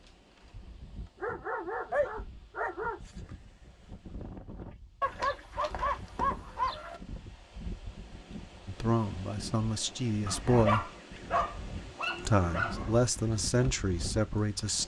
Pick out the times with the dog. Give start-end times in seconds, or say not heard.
1.2-3.0, 5.0-7.0, 10.2-12.9.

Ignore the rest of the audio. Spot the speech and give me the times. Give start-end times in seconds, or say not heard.
8.7-10.9, 12.2-14.8.